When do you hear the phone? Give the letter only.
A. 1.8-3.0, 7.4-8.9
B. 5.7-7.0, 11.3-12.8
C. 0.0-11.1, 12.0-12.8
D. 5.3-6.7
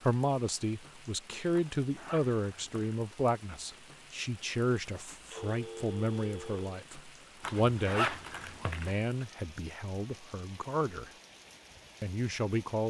D.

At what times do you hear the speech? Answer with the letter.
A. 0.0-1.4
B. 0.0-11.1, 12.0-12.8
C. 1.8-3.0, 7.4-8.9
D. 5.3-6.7
B.